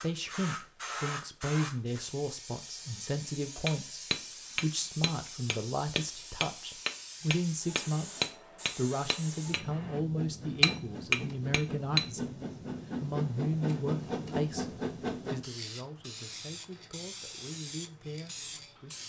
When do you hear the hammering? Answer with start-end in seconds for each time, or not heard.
3.6-10.0, 10.6-12.1.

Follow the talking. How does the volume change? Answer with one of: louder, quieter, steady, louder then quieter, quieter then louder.
quieter.